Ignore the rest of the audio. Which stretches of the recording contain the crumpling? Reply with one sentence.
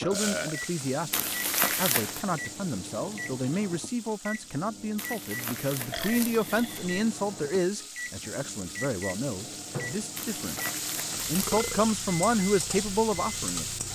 The crumpling can be heard from 1.1 to 2.2 s, from 5.0 to 6.8 s and from 10.2 to 11.6 s.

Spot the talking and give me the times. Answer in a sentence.
You can hear the talking from 0.0 to 13.7 s.